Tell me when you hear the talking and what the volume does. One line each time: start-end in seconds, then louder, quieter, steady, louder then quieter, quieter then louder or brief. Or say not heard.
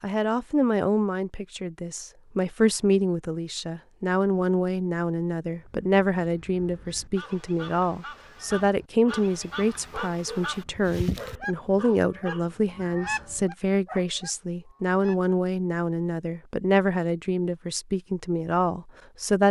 0.0-19.4 steady.